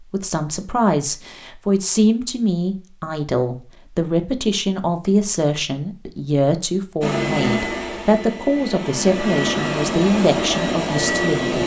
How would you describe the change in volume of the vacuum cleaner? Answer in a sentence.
The loudness of the vacuum cleaner goes down, then up.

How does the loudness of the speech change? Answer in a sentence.
The loudness of the speech stays about the same.